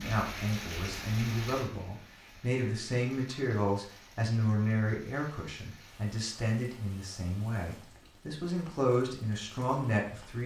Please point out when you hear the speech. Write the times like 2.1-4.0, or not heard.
0.0-10.4.